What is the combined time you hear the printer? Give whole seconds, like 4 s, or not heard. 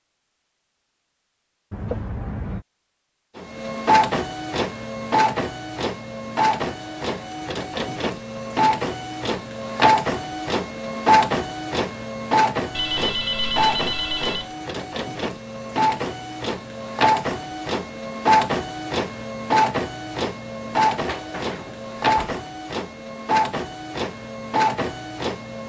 22 s.